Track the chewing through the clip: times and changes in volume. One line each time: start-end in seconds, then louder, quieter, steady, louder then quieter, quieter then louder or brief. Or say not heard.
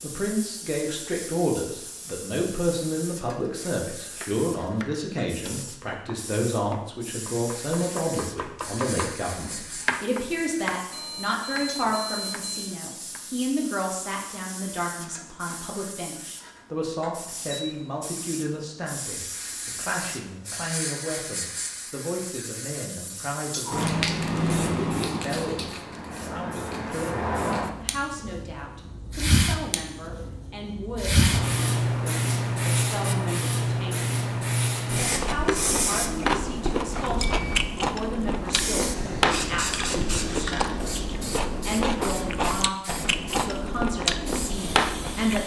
34.9-45.4 steady.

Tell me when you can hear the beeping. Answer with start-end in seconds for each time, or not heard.
10.9-12.8, 17.5-18.1, 37.0-37.8.